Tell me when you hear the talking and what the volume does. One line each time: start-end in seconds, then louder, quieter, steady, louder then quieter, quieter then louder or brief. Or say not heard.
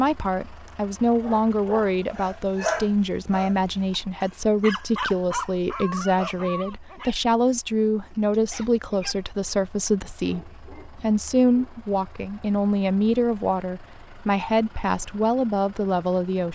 0.0-16.5 steady.